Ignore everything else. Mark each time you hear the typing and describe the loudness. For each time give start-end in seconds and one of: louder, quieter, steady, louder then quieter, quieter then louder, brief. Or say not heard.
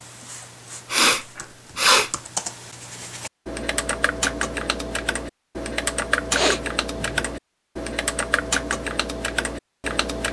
0.0-10.2 louder.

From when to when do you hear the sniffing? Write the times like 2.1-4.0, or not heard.
0.9-2.1, 6.3-7.2.